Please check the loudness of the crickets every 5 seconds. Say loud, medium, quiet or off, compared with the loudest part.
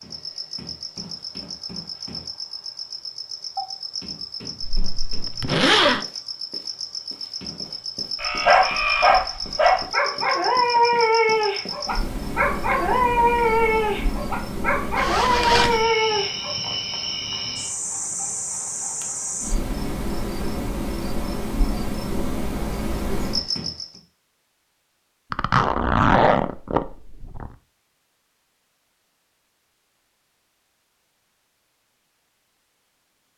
medium, loud, loud, loud, loud, off, off.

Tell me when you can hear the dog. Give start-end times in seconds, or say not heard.
8.2-16.6.